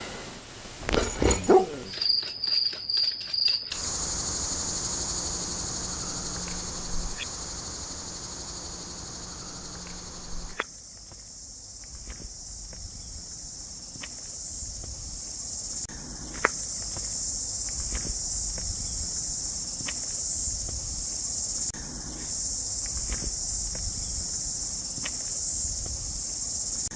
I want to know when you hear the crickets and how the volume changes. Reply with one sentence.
The crickets can be heard from 0.0 to 26.9 s, getting quieter then louder.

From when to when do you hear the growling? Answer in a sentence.
You can hear the growling from 0.9 to 1.9 s.